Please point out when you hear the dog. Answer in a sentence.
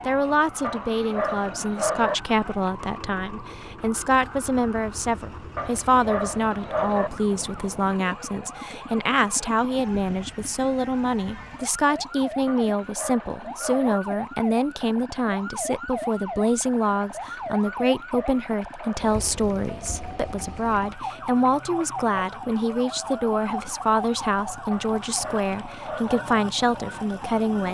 The dog can be heard from 0.6 to 2.1 s, from 5.5 to 7.1 s, from 12.4 to 14.0 s, from 17.6 to 19.1 s and from 24.7 to 26.2 s.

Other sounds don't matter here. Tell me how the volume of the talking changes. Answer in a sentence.
The volume of the talking stays about the same.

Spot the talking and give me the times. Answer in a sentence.
The talking can be heard from 0.1 to 27.7 s.